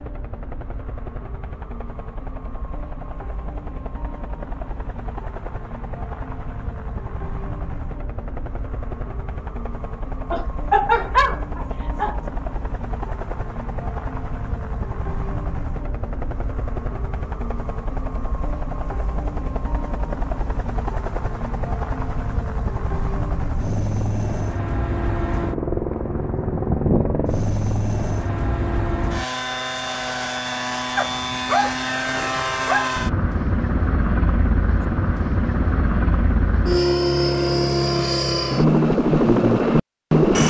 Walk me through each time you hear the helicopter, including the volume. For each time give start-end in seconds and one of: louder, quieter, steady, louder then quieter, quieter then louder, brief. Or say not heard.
0.0-40.4 louder.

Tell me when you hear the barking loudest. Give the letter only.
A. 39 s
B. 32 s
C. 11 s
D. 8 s
C.